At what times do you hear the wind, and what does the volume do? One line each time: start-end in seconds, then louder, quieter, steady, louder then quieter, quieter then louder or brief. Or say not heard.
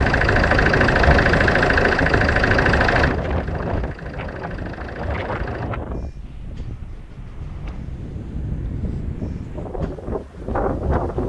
0.0-11.2 quieter then louder.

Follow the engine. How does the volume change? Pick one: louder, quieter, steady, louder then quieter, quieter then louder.
quieter.